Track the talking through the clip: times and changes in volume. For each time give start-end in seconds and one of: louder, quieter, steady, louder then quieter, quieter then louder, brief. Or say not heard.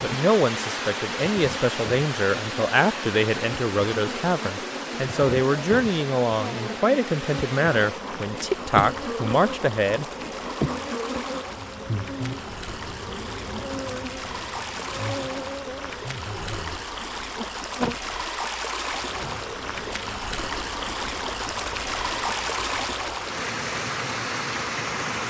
0.0-10.1 steady.